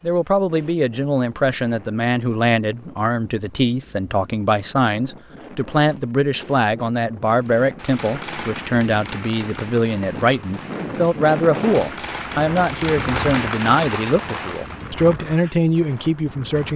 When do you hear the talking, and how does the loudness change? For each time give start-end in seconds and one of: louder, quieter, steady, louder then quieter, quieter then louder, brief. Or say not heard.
0.0-16.7 steady.